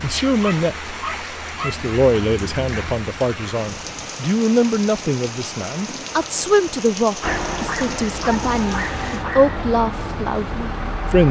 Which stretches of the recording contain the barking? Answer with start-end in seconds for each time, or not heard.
0.4-1.8, 7.2-9.7.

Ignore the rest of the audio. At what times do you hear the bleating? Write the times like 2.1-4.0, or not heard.
not heard.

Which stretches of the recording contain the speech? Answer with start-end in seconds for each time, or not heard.
0.0-0.9, 1.6-11.2.